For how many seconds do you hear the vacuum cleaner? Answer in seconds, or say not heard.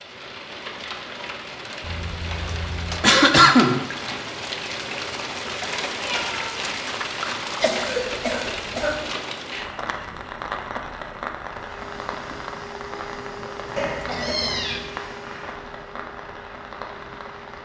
6 s.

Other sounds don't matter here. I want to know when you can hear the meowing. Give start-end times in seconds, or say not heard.
1.8-3.1, 6.0-6.7, 13.8-14.8.